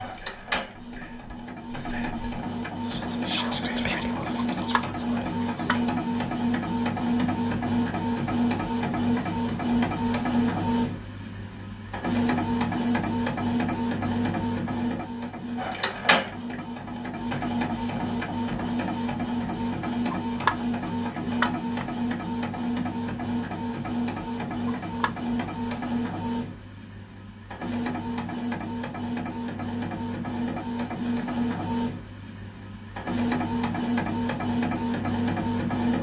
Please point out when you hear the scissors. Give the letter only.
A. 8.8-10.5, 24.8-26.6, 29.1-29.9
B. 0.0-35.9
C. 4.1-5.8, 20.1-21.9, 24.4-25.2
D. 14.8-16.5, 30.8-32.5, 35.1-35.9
C.